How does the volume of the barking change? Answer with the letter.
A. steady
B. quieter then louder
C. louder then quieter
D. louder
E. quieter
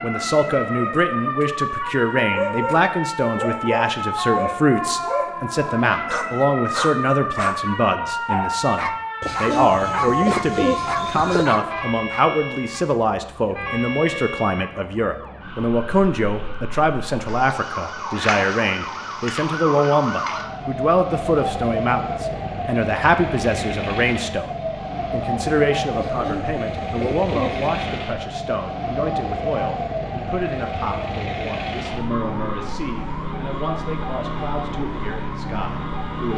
A.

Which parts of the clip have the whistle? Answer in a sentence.
You can't hear the whistle here.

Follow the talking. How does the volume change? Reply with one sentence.
The loudness of the talking goes down.